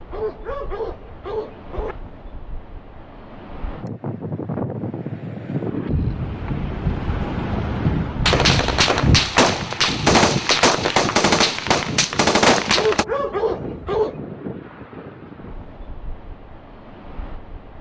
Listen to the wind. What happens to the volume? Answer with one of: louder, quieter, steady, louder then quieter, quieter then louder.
louder then quieter.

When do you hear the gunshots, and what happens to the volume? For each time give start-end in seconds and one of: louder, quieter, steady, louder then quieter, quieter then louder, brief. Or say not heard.
8.2-13.1 steady.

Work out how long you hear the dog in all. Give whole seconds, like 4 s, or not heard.
3 s.